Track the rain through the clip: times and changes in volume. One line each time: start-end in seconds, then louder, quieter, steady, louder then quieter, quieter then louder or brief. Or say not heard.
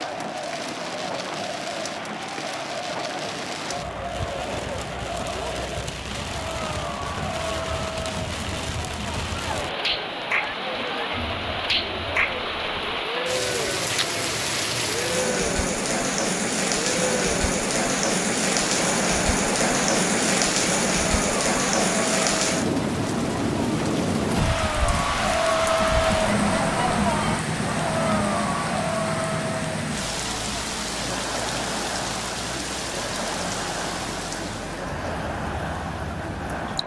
0.0-36.8 louder then quieter.